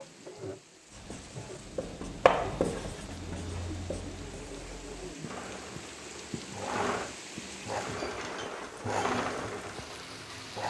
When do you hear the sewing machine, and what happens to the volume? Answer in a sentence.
You can hear the sewing machine from 0.0 to 10.6 s, getting louder.